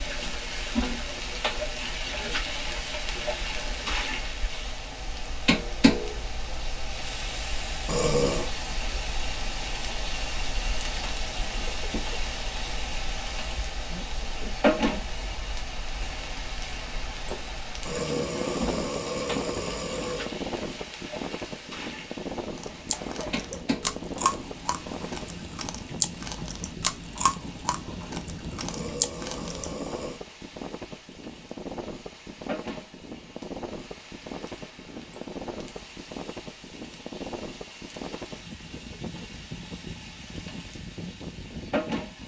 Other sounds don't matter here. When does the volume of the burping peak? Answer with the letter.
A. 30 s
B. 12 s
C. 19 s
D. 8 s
D.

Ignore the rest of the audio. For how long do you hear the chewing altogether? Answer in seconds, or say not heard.
7 s.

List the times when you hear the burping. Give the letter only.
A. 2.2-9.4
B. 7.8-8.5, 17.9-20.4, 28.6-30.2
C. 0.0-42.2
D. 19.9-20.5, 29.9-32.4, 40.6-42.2
B.